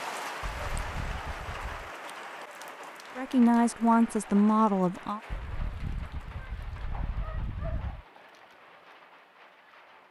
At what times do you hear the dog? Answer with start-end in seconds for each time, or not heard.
0.4-1.9, 5.3-8.1.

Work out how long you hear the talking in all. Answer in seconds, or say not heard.
2 s.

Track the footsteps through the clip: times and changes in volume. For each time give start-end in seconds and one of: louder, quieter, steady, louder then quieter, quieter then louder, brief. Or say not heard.
not heard.